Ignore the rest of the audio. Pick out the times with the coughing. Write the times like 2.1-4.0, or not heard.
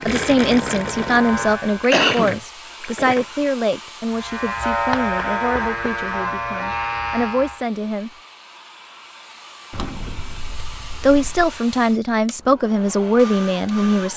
1.9-2.4.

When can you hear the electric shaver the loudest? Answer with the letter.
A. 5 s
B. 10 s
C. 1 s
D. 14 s
A.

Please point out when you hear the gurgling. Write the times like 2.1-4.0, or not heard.
0.0-3.3.